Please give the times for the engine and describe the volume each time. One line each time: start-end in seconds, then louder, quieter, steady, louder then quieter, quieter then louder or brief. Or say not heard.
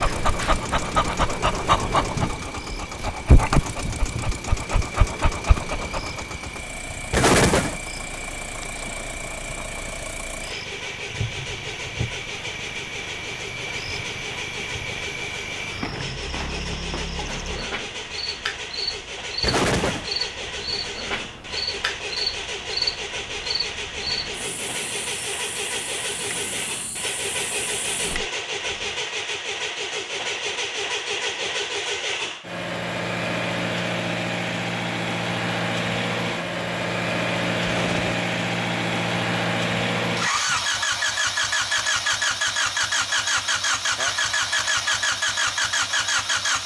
0.0-46.6 louder.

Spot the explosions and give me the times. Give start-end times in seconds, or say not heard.
7.1-7.8, 19.4-20.1, 37.6-38.2.